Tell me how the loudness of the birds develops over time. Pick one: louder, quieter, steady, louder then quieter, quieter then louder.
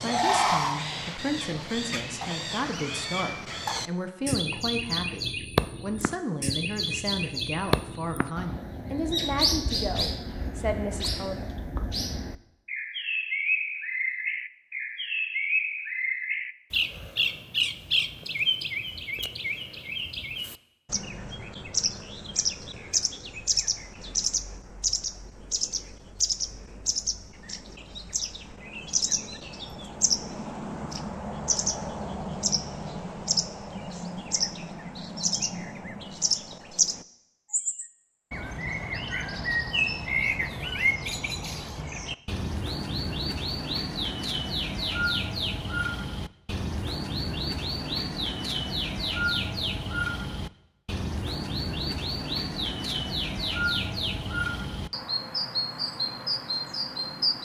steady.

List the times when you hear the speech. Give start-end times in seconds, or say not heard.
0.0-11.6.